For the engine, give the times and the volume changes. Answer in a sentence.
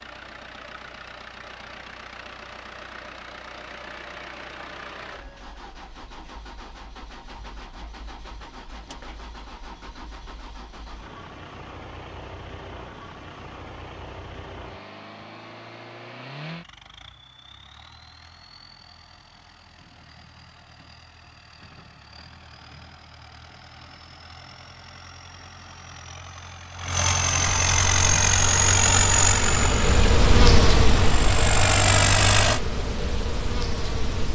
You can hear the engine from 0.0 to 32.6 s, getting quieter then louder.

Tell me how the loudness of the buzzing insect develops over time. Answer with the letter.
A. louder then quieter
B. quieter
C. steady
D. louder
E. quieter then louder
A.